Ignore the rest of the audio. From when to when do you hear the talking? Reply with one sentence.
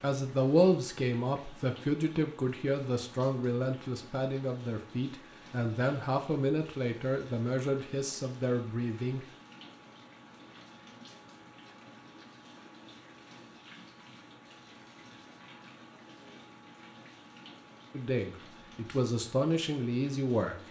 You can hear the talking from 0.0 to 9.2 s and from 17.9 to 20.6 s.